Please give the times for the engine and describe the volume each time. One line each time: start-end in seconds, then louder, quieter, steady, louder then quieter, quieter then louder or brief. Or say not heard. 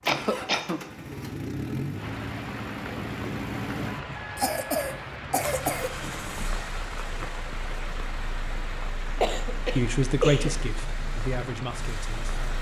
0.0-12.5 quieter.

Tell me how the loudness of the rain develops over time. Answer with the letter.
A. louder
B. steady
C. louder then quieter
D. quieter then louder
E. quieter
B.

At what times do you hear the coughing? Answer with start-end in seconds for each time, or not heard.
0.1-0.8, 4.3-5.9, 9.2-10.6.